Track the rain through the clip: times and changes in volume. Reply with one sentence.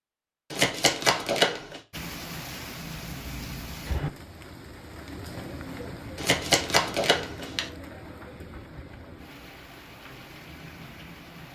You can hear the rain from 1.9 to 11.4 s, getting quieter.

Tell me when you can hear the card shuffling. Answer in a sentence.
The card shuffling can be heard from 0.5 to 1.8 s and from 6.2 to 7.7 s.